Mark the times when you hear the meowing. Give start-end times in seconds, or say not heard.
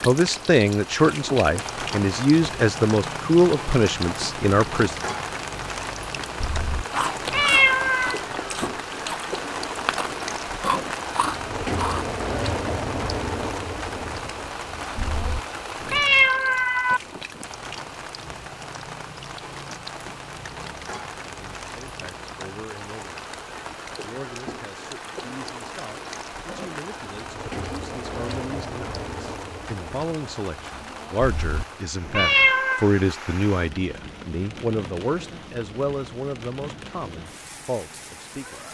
6.4-8.2, 14.9-17.0, 31.2-32.9.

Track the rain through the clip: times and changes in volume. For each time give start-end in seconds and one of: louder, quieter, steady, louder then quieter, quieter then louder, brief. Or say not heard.
0.0-38.6 quieter.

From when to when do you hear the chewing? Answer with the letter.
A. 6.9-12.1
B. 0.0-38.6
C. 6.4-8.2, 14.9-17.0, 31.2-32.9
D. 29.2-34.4
A.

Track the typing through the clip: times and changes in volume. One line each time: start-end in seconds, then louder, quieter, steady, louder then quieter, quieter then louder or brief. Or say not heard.
not heard.